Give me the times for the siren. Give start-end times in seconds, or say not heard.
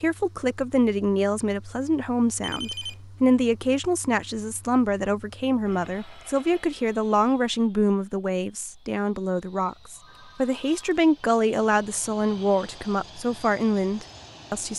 not heard.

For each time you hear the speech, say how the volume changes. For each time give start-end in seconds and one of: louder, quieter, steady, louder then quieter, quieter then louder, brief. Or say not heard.
0.0-14.7 steady.